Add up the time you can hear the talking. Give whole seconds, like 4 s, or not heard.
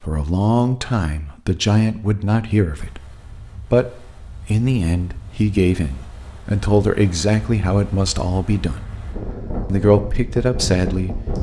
10 s.